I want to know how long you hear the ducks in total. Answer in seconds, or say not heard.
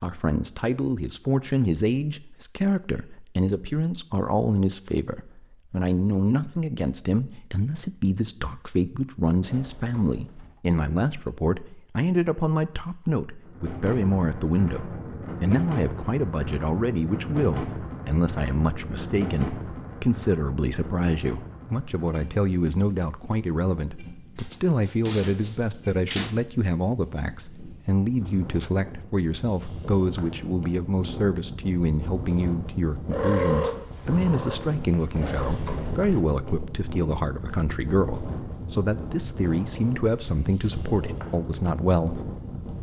not heard.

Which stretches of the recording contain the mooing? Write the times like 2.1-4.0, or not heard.
not heard.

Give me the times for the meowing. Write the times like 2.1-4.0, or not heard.
33.1-35.5.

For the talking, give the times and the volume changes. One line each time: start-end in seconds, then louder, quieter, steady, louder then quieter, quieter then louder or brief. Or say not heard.
0.0-42.3 steady.